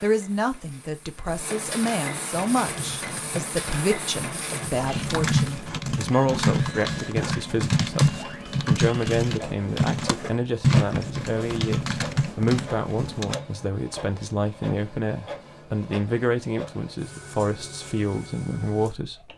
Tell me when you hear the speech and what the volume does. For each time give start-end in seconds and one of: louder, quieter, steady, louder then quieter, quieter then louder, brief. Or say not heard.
0.0-19.2 steady.